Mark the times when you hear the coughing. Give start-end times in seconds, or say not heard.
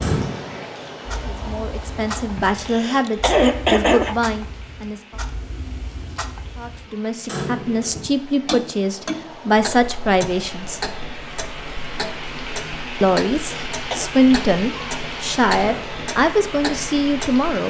2.6-4.2, 13.4-14.1.